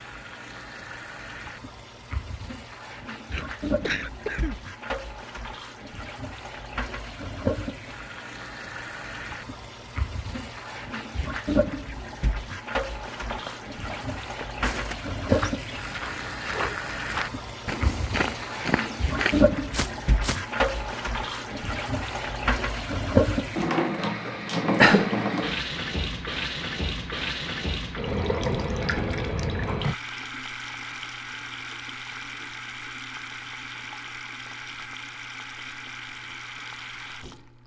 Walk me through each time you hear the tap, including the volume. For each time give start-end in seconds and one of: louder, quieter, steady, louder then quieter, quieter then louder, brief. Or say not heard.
0.0-37.6 louder then quieter.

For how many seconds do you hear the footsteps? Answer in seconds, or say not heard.
7 s.